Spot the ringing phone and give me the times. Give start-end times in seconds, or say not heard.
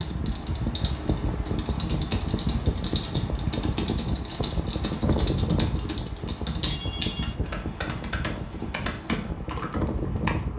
6.7-7.5.